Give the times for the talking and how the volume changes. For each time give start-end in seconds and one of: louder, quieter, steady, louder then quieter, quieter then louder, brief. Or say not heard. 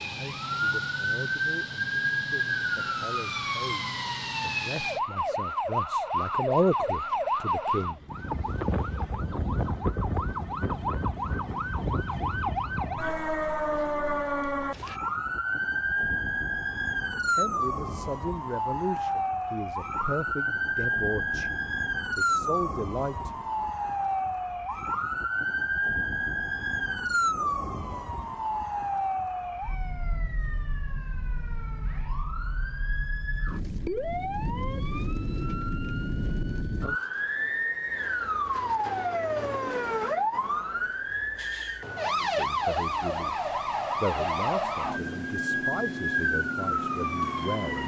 0.0-8.1 louder
17.1-23.4 steady
42.2-47.8 louder then quieter.